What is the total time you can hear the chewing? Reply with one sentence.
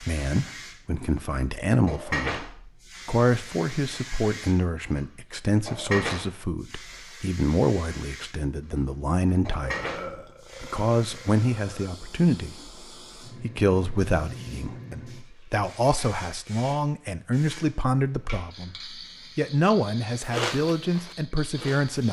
You can hear the chewing for 2 seconds altogether.